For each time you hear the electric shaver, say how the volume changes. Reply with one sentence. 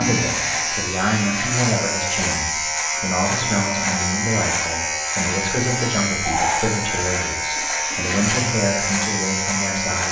The electric shaver can be heard from 0.0 to 10.0 s, at a steady volume.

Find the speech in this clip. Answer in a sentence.
You can hear the speech from 0.0 to 10.0 s.